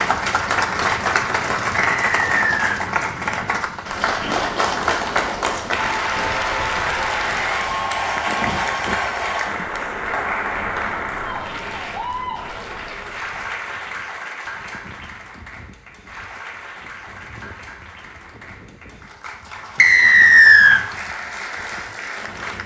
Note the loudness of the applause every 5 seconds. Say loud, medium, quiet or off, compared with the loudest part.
loud, loud, medium, quiet, medium.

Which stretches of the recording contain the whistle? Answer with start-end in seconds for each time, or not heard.
1.8-2.8, 19.8-20.8.